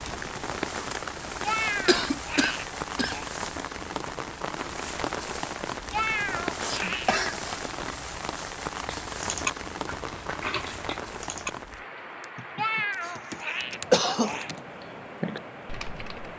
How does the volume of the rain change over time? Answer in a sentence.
The loudness of the rain goes down.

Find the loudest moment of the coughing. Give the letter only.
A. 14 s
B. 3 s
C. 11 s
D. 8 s
A.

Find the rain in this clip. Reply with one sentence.
You can hear the rain from 0.0 to 16.3 s.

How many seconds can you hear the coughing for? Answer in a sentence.
The coughing can be heard for 3 seconds in total.